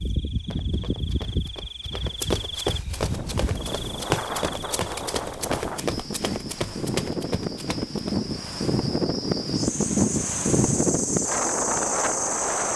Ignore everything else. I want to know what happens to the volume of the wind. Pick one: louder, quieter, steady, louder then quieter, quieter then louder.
louder.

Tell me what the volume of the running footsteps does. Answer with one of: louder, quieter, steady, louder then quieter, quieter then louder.
louder.